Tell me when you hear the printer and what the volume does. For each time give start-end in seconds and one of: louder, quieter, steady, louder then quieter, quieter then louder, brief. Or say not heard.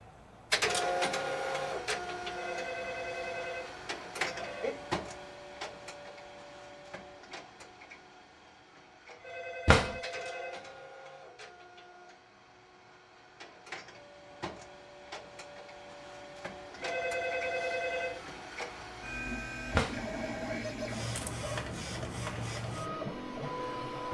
0.0-24.1 quieter then louder.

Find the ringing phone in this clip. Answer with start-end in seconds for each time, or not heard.
2.3-4.8, 9.2-10.7, 16.8-18.4.